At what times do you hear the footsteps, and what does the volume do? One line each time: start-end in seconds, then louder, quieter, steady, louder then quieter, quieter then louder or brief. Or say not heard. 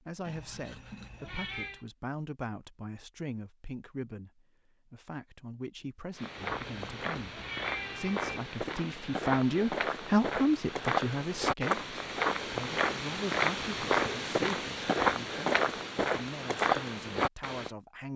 6.2-17.7 louder.